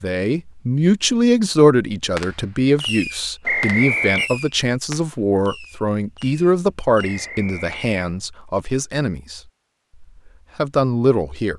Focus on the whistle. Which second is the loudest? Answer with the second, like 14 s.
4 s.